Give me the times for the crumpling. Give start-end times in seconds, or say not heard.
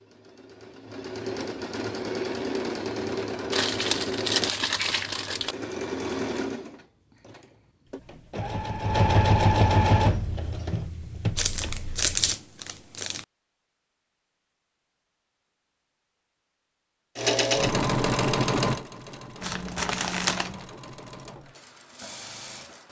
3.5-5.5, 11.3-13.2, 19.4-20.6.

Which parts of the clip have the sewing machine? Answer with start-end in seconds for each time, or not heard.
0.0-12.3, 17.1-22.8.